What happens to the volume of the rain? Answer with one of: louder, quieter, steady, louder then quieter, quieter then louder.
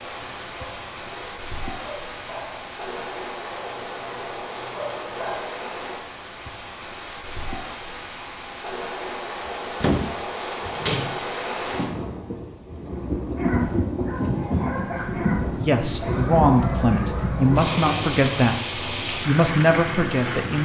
louder.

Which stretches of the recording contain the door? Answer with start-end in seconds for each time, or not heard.
9.4-11.2.